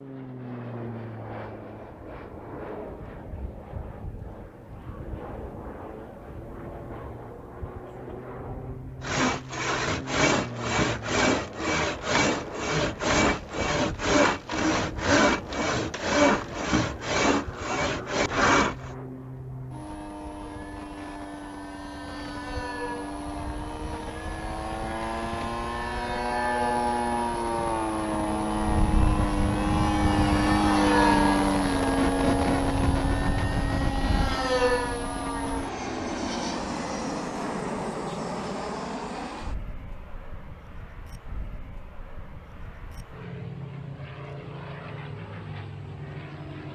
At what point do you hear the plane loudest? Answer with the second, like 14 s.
31 s.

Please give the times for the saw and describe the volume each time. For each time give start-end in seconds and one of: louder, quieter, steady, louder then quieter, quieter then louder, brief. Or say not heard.
9.0-18.9 steady.